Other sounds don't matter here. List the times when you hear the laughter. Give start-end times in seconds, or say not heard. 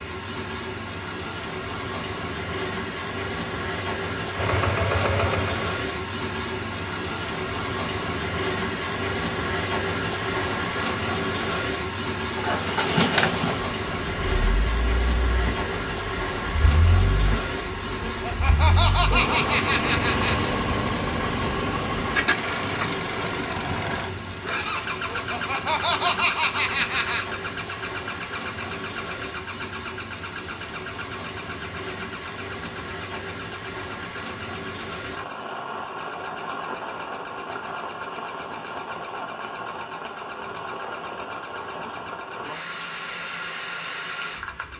18.1-20.6, 25.1-27.3.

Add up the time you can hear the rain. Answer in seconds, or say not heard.
45 s.